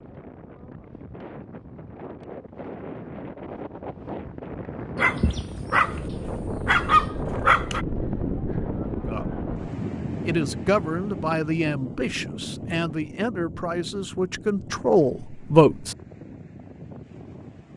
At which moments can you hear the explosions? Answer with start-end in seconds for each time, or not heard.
not heard.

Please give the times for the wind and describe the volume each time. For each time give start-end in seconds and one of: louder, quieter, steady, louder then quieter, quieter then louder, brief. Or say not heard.
0.0-17.7 louder then quieter.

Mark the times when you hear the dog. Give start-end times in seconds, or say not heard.
5.0-7.8.